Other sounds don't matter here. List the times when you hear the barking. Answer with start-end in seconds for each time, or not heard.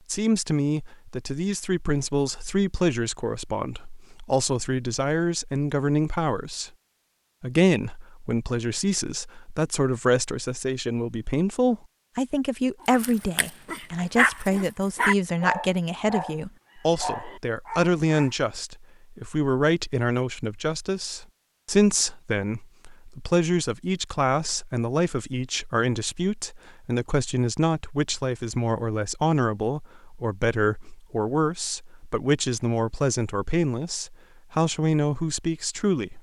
12.8-18.4.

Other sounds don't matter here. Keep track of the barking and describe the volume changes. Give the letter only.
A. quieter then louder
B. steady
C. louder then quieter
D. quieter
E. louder
C.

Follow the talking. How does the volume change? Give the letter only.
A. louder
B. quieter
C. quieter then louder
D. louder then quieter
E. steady
E.